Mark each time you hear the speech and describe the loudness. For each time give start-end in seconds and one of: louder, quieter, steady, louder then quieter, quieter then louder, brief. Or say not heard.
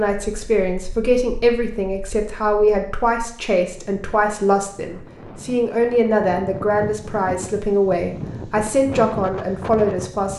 0.0-10.3 steady.